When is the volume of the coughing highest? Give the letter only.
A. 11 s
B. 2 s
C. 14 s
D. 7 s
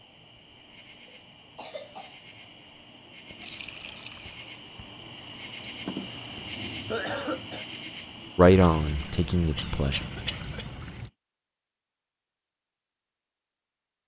D.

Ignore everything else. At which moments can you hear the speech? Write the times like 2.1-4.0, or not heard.
8.3-10.0.